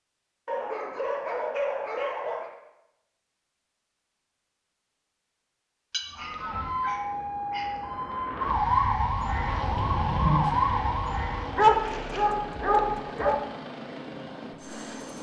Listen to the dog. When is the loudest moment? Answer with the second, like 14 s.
12 s.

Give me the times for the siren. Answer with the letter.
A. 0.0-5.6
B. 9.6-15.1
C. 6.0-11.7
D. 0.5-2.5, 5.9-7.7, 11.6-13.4
C.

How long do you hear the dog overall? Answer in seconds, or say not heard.
6 s.